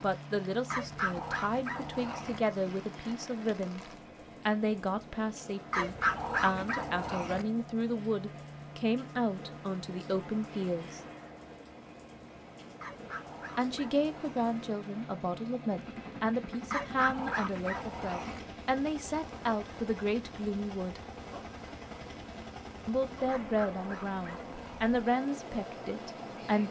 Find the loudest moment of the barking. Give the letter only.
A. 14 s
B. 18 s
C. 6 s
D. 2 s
C.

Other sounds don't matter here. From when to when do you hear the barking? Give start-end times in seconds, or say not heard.
0.7-2.4, 5.7-7.5, 12.8-14.4, 16.7-18.4, 23.2-24.9.